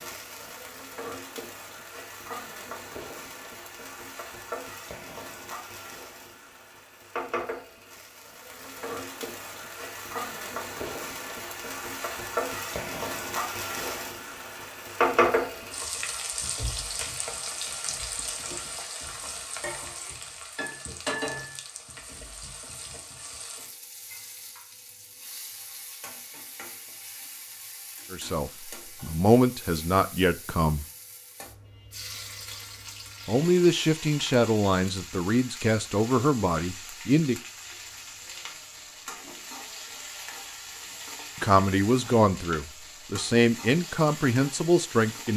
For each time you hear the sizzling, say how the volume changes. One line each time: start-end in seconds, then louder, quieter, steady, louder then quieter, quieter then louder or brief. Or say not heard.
0.0-45.3 louder then quieter.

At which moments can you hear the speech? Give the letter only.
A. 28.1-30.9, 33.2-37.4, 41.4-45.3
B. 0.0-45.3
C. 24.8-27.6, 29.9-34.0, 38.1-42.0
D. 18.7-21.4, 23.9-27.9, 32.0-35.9
A.